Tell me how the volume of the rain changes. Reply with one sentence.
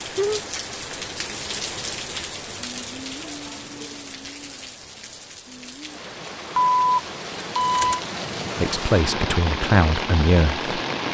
The loudness of the rain goes down, then up.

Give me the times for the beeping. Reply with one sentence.
The beeping can be heard from 6.5 to 8.0 s.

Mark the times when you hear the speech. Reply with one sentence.
The speech can be heard from 8.6 to 10.7 s.